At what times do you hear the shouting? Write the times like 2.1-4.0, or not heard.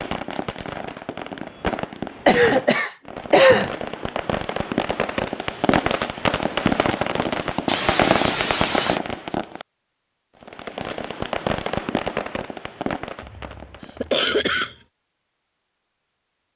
not heard.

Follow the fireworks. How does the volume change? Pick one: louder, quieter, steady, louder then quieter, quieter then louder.
louder then quieter.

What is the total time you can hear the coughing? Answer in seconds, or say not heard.
4 s.